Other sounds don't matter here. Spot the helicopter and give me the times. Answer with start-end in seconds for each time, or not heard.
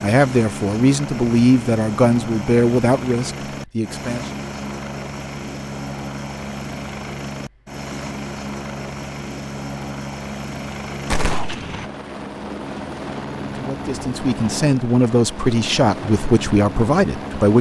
0.0-17.5.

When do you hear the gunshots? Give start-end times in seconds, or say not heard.
11.1-11.9.